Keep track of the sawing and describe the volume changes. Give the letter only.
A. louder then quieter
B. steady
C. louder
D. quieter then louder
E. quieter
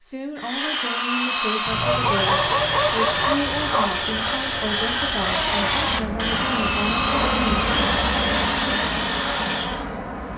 B.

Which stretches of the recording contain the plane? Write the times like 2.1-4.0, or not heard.
1.7-10.3.